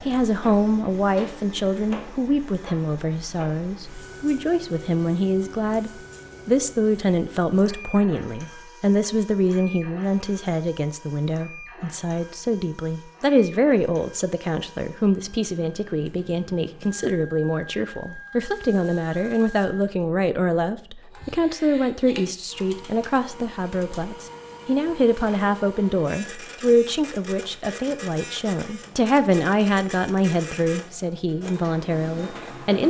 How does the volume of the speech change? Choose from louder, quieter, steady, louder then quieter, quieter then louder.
steady.